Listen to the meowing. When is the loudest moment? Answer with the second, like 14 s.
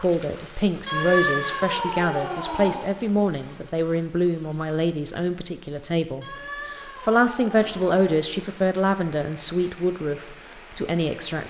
1 s.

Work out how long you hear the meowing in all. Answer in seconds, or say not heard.
4 s.